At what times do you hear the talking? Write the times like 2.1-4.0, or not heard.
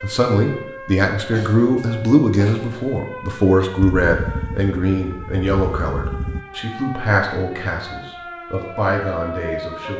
0.0-9.9.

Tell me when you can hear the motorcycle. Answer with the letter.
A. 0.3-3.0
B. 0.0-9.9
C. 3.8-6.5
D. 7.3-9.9
C.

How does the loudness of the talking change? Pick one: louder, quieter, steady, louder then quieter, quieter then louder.
quieter.